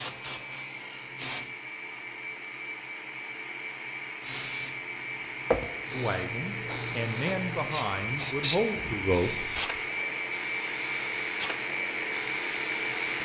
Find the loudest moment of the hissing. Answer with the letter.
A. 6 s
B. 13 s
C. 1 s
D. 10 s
A.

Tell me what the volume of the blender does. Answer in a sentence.
The volume of the blender goes up.